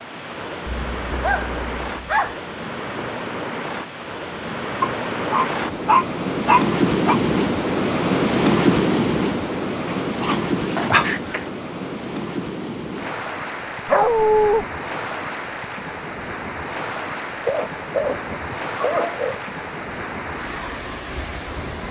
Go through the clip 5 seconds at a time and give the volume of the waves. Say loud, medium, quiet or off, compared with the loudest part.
medium, loud, medium, medium, medium.